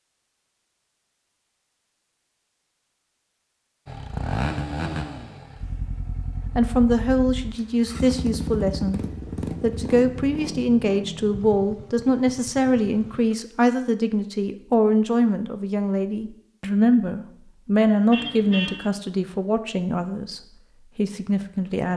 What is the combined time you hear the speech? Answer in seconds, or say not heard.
15 s.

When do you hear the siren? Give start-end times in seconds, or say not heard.
not heard.